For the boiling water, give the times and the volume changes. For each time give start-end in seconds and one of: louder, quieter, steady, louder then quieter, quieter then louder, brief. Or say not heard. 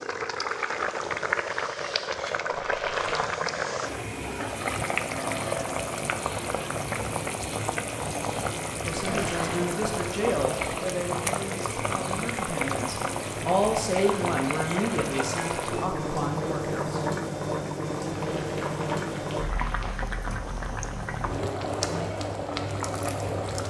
0.0-23.6 steady.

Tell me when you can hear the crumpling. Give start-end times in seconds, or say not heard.
2.5-3.2, 9.1-9.6, 18.0-20.1.